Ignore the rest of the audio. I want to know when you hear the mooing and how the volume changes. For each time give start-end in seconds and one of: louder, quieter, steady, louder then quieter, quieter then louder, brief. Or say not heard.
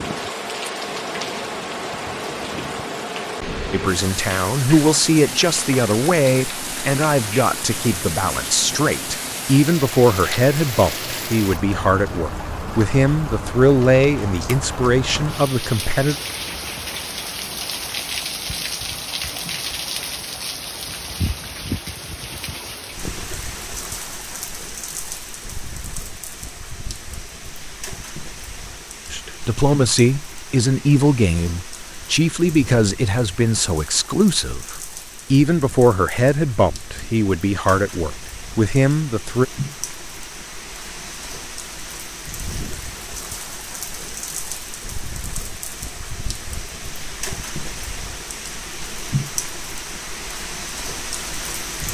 not heard.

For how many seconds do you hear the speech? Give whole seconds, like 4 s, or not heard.
23 s.